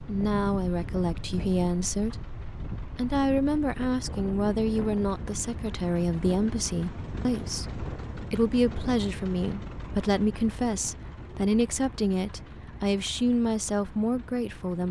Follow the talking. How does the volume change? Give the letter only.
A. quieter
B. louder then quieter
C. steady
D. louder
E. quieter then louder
C.